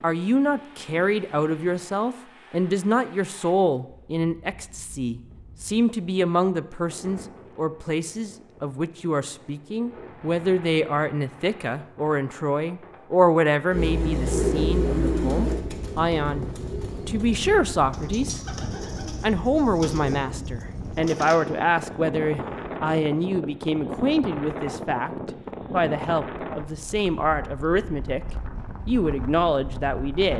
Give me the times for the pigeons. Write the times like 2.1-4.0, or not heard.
13.7-21.4.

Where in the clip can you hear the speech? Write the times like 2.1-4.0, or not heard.
0.0-16.4, 17.1-18.6, 19.2-28.2, 28.9-30.3.